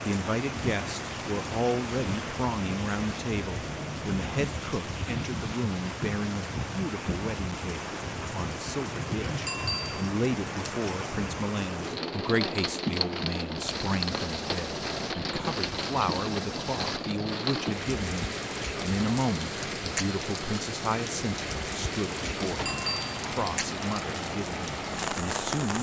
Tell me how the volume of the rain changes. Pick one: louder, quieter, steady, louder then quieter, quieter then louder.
steady.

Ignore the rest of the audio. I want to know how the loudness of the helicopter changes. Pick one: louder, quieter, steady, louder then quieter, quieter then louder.
steady.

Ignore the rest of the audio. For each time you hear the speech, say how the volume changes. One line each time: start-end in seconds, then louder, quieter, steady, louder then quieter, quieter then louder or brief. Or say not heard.
0.0-25.7 steady.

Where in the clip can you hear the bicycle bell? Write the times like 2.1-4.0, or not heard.
9.4-10.1, 22.6-23.2.